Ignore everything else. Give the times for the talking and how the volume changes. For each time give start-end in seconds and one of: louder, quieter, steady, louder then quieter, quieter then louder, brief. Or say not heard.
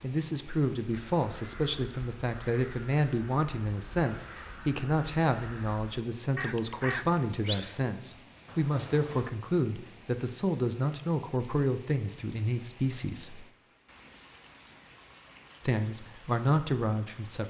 0.0-13.4 steady
15.6-17.4 brief.